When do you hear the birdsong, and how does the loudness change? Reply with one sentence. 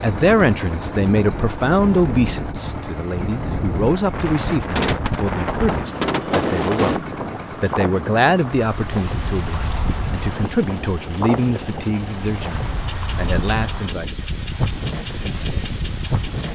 The birdsong can't be heard in this clip.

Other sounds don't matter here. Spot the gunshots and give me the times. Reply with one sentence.
The gunshots can be heard from 4.8 to 6.5 s.